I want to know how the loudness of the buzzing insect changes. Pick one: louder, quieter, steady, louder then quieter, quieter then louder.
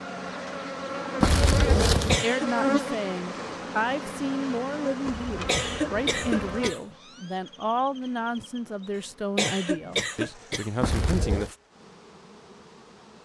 quieter.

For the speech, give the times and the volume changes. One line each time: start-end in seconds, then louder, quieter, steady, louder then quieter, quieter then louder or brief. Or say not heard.
2.2-11.6 steady.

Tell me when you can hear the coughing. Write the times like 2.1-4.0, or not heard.
2.0-2.5, 5.5-7.0, 9.3-10.7.